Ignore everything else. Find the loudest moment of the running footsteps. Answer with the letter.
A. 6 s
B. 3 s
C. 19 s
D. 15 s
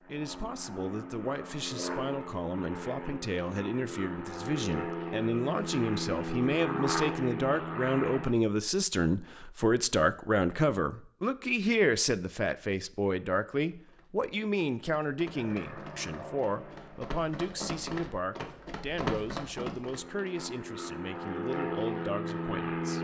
C.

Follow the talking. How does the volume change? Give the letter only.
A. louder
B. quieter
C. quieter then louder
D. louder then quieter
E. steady
D.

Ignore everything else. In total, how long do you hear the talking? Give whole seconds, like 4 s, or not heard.
23 s.